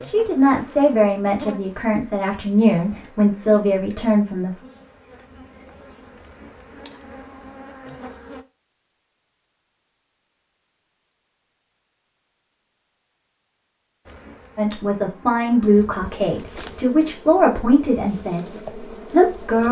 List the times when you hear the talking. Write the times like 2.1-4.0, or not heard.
0.0-4.5, 14.6-19.6.